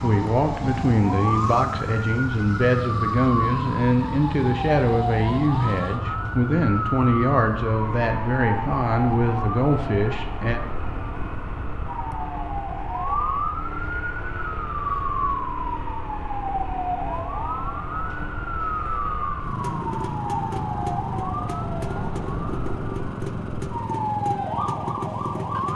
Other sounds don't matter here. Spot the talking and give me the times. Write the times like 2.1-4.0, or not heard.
0.0-10.6.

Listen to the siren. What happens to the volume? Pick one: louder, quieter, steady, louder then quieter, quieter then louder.
steady.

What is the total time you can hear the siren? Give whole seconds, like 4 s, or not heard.
26 s.